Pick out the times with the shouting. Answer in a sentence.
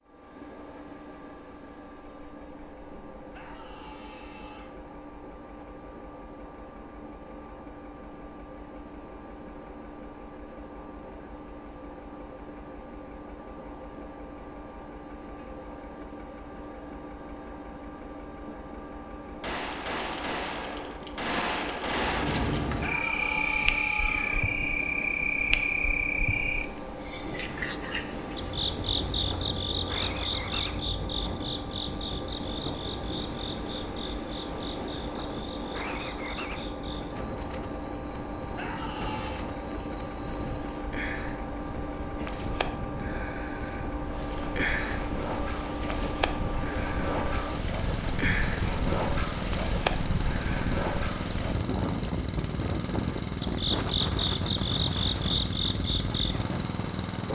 You can hear the shouting from 3.3 to 4.8 s, from 22.8 to 24.4 s and from 38.5 to 39.5 s.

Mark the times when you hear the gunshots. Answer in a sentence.
The gunshots can be heard from 19.4 to 22.7 s.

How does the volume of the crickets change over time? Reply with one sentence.
The loudness of the crickets goes down, then up.